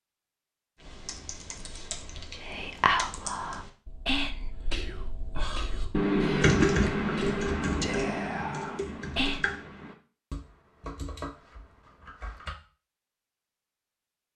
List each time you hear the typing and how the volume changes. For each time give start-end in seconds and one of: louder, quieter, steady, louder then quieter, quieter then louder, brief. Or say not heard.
0.8-12.6 louder then quieter.